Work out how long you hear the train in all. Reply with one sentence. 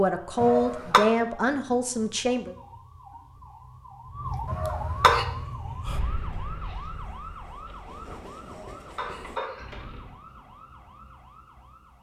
The train can be heard for 4 seconds in total.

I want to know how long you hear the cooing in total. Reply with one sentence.
The cooing can't be heard in this clip.